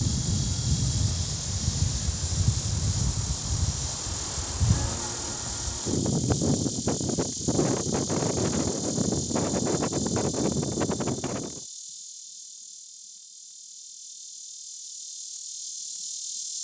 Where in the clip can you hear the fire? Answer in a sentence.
You can't hear the fire here.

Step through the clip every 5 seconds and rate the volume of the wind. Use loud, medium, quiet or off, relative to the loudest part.
loud, loud, loud, off.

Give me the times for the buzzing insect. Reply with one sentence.
You can hear the buzzing insect from 0.0 to 16.5 s.